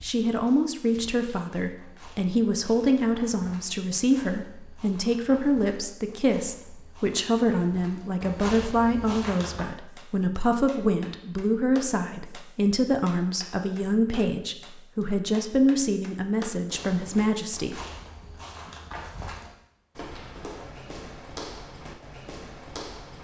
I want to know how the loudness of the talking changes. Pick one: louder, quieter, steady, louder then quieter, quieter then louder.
steady.